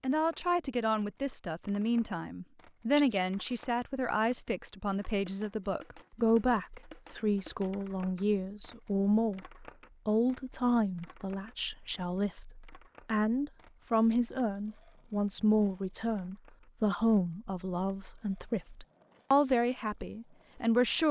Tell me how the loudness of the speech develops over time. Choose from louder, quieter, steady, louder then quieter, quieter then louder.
steady.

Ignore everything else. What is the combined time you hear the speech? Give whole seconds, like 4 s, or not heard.
21 s.